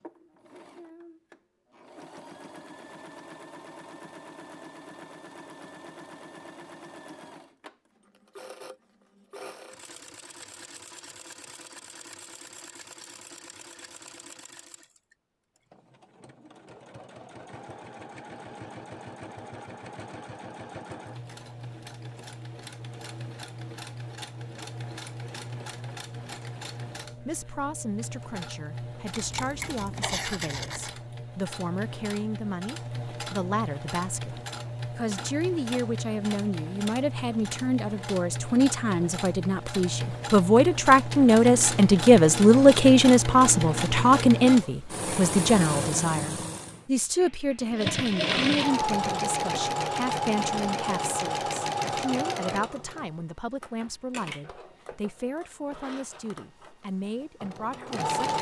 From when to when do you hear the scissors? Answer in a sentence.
You can hear the scissors from 29.1 to 30.9 s.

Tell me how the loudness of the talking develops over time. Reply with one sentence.
The volume of the talking goes up, then down.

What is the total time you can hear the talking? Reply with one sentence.
The talking can be heard for 31 seconds in total.